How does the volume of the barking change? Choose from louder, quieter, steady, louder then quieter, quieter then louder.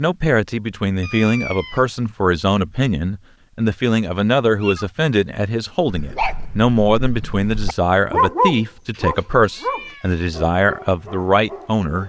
louder then quieter.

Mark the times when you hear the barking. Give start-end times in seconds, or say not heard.
5.8-12.0.